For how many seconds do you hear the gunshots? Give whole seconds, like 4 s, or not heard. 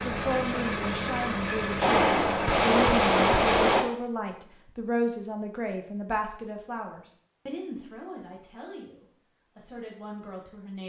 2 s.